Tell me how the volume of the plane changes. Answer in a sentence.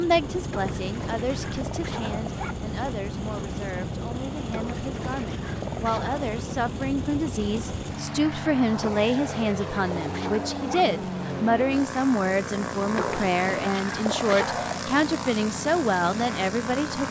The volume of the plane stays about the same.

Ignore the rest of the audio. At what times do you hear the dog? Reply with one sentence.
You can hear the dog from 0.5 to 2.5 s, from 4.5 to 6.2 s, from 8.8 to 10.8 s and from 12.9 to 14.8 s.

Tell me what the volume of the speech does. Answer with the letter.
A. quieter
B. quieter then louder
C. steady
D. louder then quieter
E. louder
E.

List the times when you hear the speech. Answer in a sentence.
The speech can be heard from 0.0 to 17.0 s.